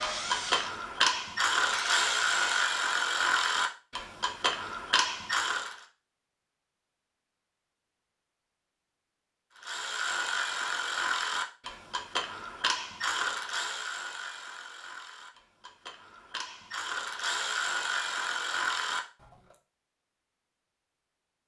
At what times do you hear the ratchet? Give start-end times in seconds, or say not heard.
0.0-5.8, 9.6-19.6.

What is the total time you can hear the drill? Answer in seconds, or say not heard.
3 s.